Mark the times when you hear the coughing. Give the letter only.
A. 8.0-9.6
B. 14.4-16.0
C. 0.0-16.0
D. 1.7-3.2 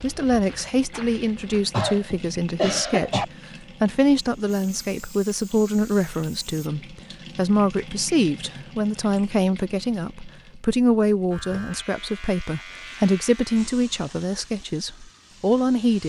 D.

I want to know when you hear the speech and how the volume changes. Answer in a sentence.
You can hear the speech from 0.0 to 16.0 s, at a steady volume.